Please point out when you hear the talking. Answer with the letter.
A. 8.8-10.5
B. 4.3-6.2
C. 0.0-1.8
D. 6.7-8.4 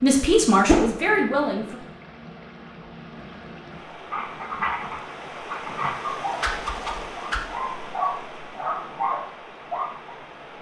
C.